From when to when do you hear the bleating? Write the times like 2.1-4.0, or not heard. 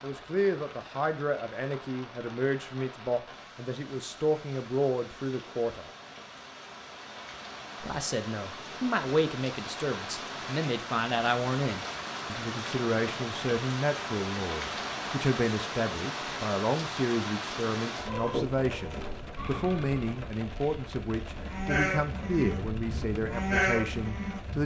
18.1-24.6.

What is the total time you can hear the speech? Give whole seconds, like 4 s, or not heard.
23 s.